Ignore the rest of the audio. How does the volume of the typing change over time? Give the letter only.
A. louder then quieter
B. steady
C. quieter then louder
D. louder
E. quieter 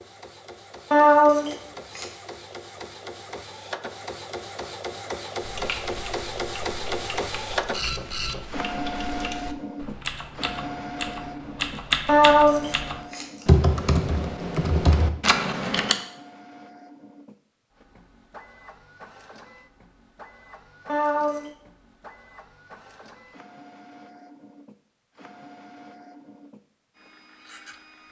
D.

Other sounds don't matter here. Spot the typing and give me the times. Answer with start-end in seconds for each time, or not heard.
5.4-15.9.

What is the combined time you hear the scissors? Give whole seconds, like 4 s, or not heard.
3 s.